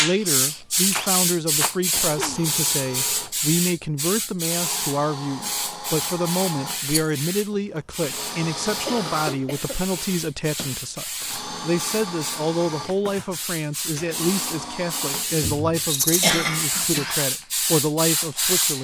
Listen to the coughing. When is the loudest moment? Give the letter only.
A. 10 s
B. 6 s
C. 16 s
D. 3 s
C.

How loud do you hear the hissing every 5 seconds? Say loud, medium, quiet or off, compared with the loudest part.
loud, medium, medium, loud.